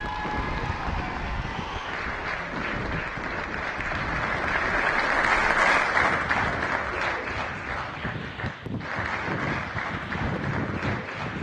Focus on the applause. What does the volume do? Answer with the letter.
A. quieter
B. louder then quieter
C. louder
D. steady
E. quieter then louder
B.